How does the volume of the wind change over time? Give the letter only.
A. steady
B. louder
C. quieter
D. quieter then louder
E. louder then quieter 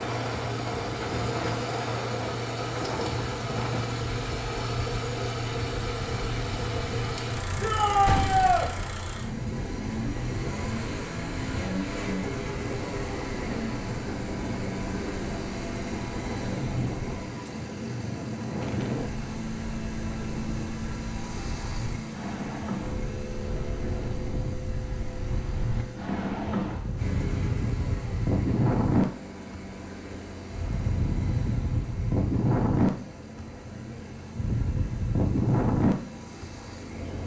B.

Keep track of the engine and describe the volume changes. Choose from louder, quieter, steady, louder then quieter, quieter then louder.
quieter.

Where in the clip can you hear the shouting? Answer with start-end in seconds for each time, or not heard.
7.6-8.7.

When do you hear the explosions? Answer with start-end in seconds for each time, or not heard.
8.1-8.7.